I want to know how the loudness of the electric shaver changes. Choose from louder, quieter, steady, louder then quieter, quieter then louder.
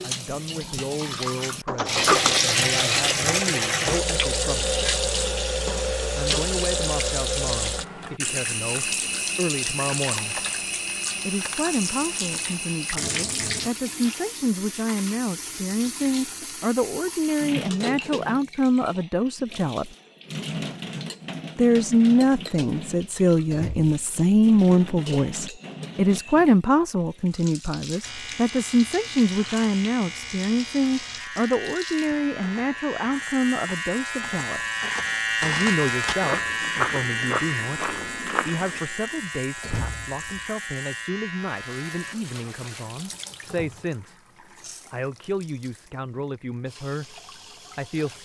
louder then quieter.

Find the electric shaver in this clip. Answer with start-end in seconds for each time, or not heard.
28.0-42.1.